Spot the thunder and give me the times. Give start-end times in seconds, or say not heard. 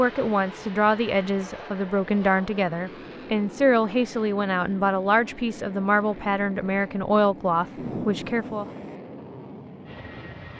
7.8-8.9.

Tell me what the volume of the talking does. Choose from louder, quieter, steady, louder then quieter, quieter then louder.
steady.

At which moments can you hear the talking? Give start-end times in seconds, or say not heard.
0.0-8.7.